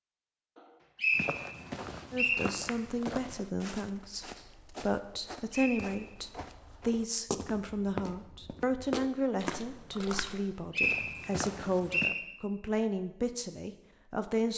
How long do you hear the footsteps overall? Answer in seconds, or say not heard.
11 s.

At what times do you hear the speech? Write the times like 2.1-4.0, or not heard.
2.1-14.5.